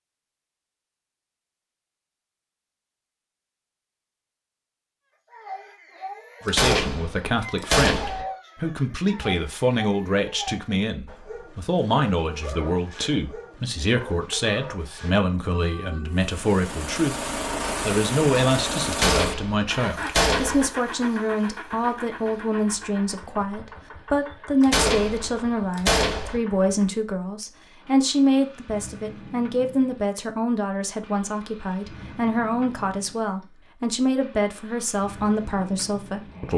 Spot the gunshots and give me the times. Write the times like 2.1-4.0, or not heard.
6.5-8.2, 18.9-20.6, 24.6-26.4.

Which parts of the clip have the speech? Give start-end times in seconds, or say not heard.
6.5-17.2, 17.9-36.5.